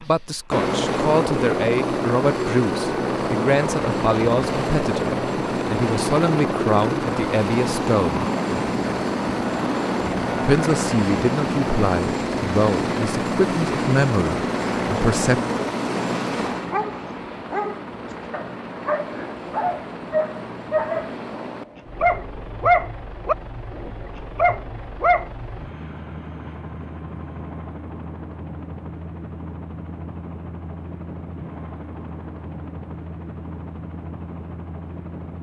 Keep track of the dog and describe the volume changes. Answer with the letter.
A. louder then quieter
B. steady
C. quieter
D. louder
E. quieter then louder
D.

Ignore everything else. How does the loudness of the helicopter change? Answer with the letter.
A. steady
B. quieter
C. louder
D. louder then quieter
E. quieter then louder
B.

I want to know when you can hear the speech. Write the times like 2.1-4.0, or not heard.
0.0-8.2, 10.4-15.4.